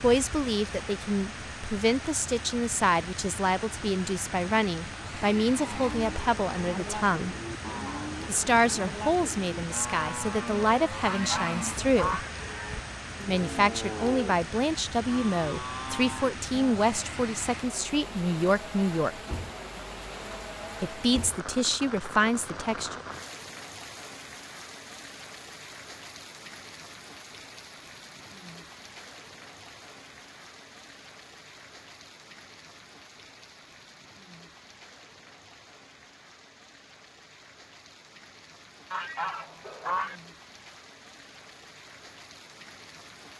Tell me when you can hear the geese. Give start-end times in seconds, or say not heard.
11.0-12.3, 38.9-40.2.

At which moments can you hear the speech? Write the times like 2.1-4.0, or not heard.
0.0-7.3, 8.2-12.2, 13.2-19.1, 20.8-23.0.